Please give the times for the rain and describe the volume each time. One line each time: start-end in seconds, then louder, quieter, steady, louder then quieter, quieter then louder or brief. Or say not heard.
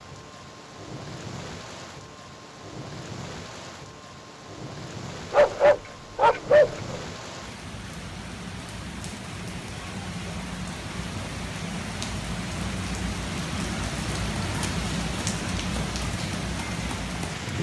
0.0-17.5 louder.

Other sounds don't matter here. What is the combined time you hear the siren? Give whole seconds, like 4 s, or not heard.
not heard.